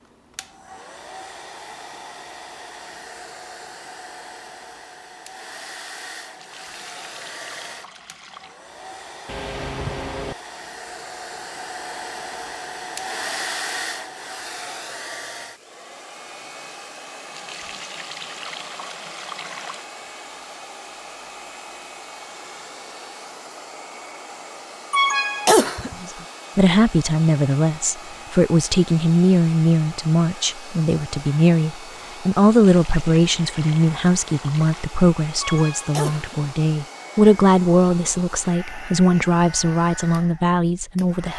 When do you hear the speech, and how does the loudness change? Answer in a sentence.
You can hear the speech from 26.0 to 41.3 s, at a steady volume.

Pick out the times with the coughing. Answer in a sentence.
The coughing can be heard from 9.2 to 10.3 s, from 24.9 to 25.9 s and from 35.4 to 36.5 s.